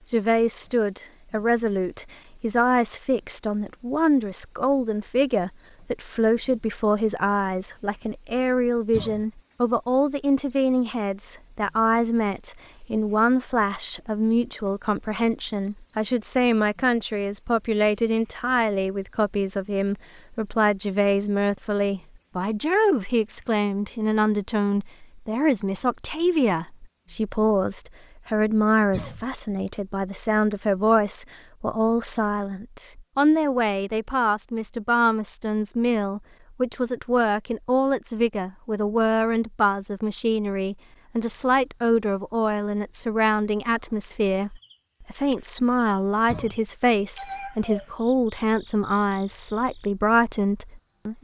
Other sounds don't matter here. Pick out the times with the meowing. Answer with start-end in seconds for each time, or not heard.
47.1-47.9.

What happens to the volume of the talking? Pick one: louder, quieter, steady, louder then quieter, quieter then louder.
steady.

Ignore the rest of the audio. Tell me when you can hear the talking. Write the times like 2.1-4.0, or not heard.
0.1-51.1.